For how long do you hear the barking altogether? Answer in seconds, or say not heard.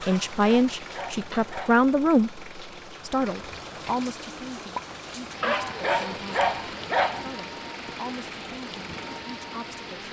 4 s.